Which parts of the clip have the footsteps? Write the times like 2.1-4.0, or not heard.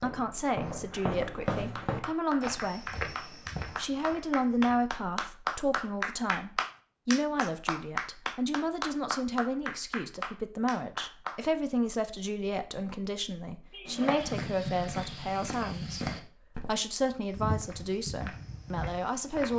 0.0-4.8, 13.8-19.5.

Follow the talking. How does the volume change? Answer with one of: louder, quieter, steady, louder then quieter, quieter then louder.
steady.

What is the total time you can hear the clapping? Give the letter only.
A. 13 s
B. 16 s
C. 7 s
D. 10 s
D.